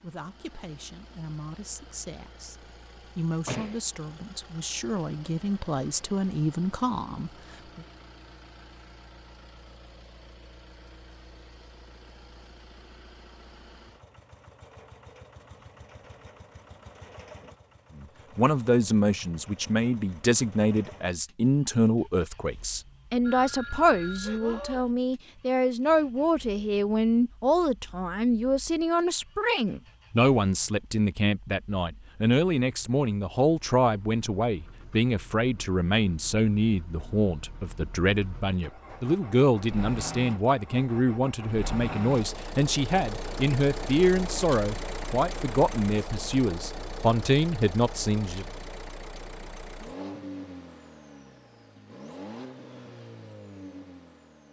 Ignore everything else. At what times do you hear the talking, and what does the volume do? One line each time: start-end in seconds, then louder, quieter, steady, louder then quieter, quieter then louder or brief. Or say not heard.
0.0-7.8 louder
17.9-48.5 steady.